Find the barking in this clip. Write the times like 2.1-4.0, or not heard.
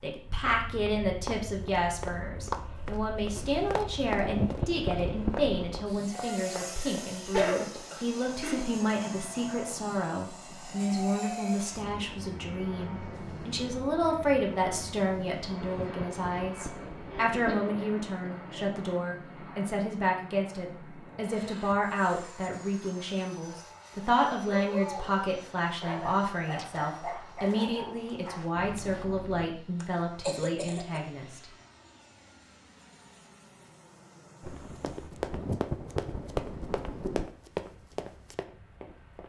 24.5-29.5.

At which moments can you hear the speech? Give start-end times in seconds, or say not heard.
0.0-31.4.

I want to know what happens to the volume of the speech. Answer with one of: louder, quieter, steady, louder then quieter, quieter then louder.
steady.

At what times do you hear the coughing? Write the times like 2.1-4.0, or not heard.
6.8-8.7, 16.8-18.7, 29.8-31.0.